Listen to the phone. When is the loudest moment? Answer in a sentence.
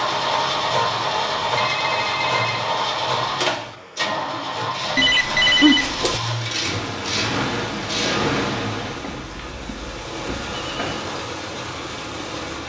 The loudest moment of the phone is at 6 seconds.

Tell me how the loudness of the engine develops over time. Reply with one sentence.
The loudness of the engine goes down.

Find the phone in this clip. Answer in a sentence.
You can hear the phone from 1.6 to 2.6 s, from 5.0 to 6.2 s and from 8.8 to 11.1 s.